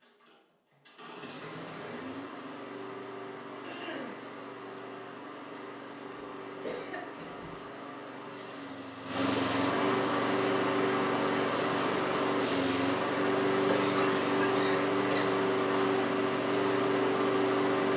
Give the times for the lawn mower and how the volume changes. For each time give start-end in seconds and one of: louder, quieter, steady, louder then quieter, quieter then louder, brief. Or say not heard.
0.0-17.9 louder.